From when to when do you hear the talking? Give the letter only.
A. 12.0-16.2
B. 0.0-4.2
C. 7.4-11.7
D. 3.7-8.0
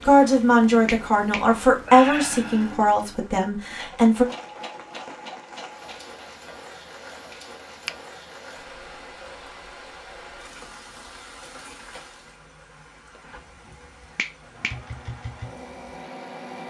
B.